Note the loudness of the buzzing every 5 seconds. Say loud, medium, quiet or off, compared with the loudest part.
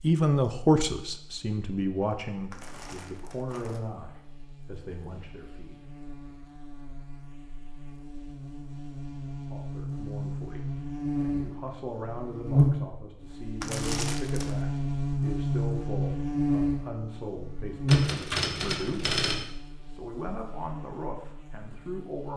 quiet, quiet, loud, loud, quiet.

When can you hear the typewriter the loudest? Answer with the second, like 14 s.
19 s.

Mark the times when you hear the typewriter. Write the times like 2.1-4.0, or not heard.
17.9-19.4.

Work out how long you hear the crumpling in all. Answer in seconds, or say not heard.
2 s.